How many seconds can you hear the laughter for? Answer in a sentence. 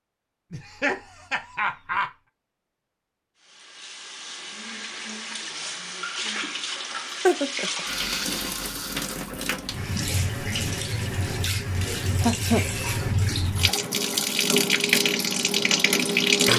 You can hear the laughter for 3 seconds altogether.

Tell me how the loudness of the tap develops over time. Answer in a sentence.
The volume of the tap goes up.